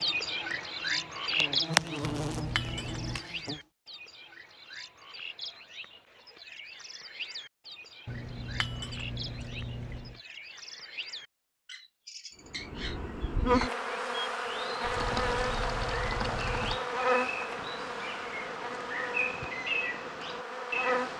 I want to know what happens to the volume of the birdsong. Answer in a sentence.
The loudness of the birdsong goes down, then up.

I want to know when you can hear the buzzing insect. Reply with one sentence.
The buzzing insect can be heard from 0.0 to 3.6 s and from 12.4 to 21.1 s.